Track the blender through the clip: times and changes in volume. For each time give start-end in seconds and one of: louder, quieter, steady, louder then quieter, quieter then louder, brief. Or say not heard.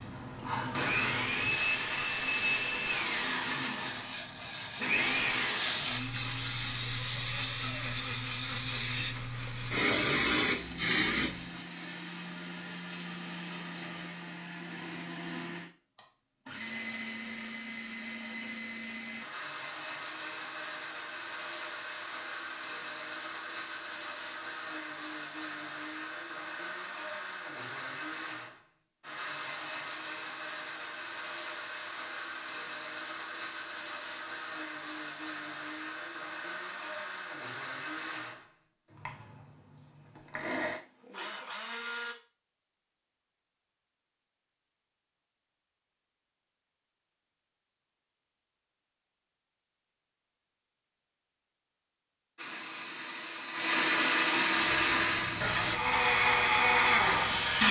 0.0-42.1 quieter
52.4-57.6 louder.